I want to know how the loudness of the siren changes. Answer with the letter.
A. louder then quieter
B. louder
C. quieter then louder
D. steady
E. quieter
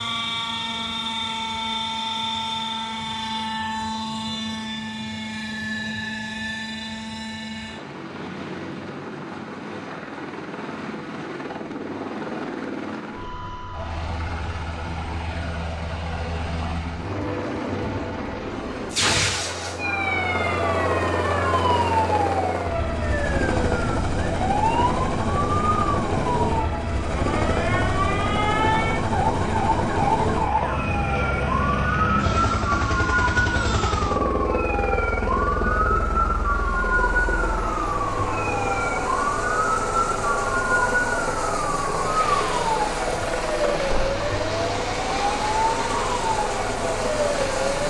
D.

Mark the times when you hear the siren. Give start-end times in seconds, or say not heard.
19.8-47.8.